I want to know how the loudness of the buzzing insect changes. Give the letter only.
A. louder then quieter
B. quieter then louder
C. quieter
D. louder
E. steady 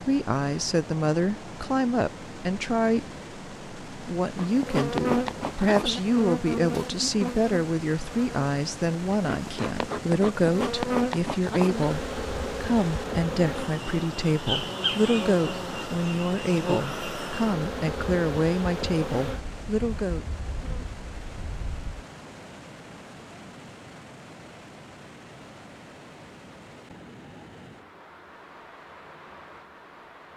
C.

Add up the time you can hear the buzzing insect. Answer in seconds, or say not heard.
18 s.